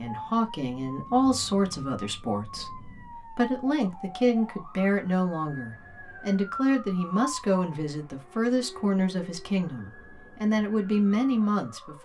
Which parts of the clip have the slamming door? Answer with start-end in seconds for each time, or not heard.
not heard.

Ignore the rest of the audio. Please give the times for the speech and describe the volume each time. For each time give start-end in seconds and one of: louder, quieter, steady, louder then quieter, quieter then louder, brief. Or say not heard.
0.0-12.0 steady.